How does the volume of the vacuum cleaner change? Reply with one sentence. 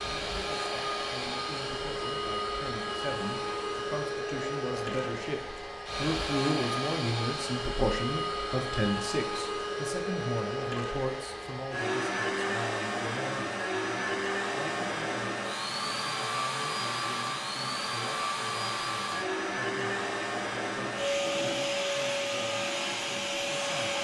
The volume of the vacuum cleaner stays about the same.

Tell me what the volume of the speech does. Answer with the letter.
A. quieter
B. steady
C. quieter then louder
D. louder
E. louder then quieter
E.